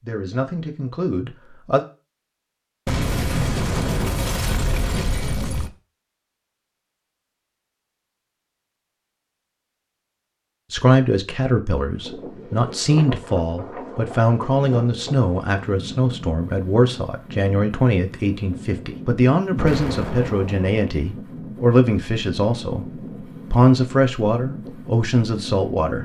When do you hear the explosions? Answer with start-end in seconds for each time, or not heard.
2.9-5.7, 19.5-20.7.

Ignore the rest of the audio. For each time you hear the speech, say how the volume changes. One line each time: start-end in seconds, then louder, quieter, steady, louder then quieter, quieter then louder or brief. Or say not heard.
0.0-1.9 brief
10.7-26.0 steady.